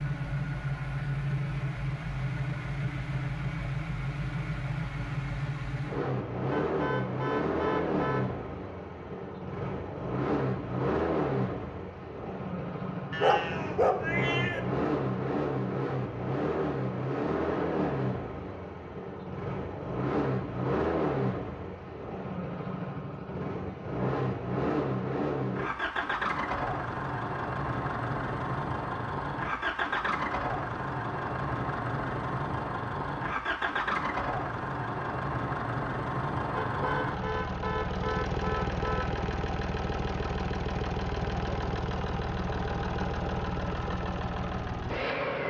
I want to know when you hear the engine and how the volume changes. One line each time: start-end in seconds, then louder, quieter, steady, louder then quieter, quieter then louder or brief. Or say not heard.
0.0-45.4 steady.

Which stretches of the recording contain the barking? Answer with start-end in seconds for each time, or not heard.
13.1-14.6.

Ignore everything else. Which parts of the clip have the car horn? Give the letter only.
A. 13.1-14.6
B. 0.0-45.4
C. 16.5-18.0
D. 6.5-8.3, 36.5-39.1
D.